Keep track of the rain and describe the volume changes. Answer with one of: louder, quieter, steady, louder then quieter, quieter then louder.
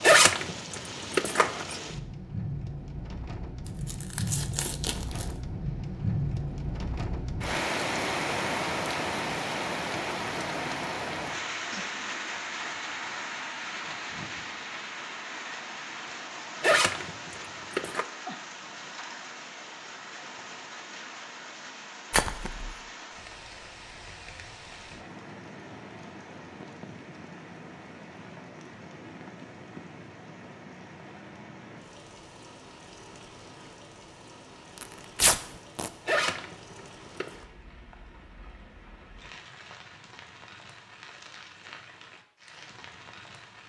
quieter.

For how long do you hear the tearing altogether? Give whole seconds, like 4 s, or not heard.
3 s.